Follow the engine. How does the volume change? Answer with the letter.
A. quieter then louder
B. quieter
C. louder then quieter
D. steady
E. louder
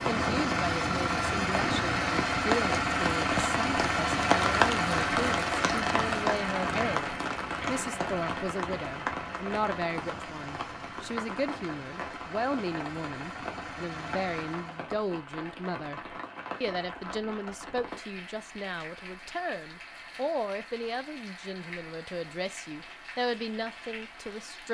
B.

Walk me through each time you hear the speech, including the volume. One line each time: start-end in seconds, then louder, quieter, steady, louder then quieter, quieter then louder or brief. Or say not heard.
0.1-24.6 steady.